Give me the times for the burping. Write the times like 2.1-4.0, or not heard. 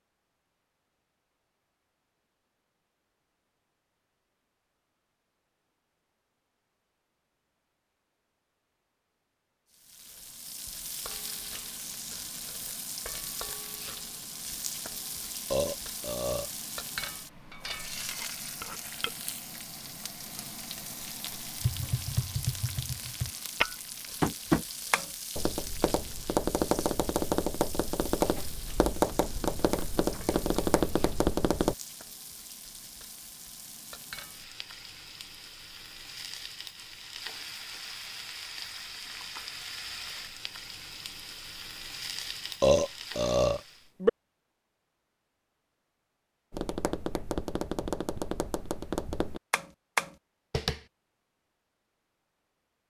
15.5-16.5, 42.6-44.1.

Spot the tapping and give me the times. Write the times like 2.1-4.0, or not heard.
21.6-31.8, 46.5-50.8.